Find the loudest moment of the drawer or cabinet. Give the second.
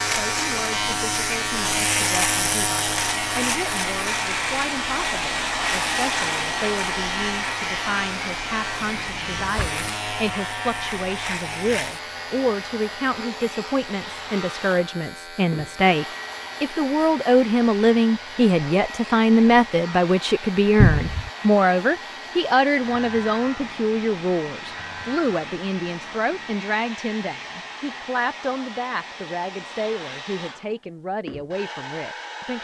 21 s.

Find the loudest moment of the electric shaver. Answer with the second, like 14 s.
2 s.